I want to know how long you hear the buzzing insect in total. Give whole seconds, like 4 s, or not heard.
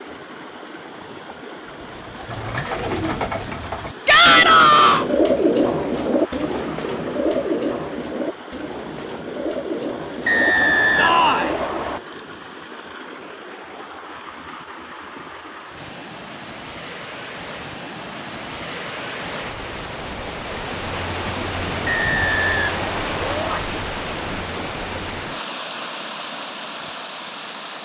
not heard.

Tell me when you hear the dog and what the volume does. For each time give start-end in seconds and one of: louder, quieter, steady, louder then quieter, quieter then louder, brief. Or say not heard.
not heard.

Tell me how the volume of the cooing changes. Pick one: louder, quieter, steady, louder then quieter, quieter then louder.
louder then quieter.